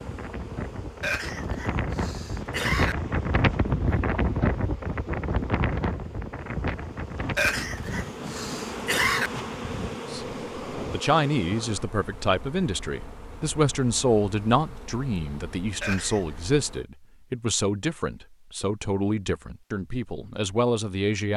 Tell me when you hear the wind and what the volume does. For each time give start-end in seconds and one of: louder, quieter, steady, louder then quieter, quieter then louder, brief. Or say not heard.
0.0-11.0 louder then quieter.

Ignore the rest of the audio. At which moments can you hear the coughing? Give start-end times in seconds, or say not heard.
1.0-3.0, 7.3-9.3, 15.8-16.4.